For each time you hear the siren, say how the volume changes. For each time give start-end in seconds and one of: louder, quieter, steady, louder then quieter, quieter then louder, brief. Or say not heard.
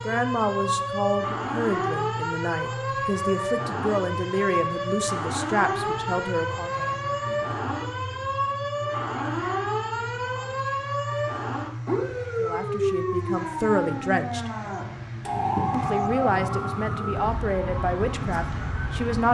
0.0-19.3 steady.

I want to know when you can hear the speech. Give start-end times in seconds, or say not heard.
0.1-6.8, 12.4-14.5, 15.7-19.3.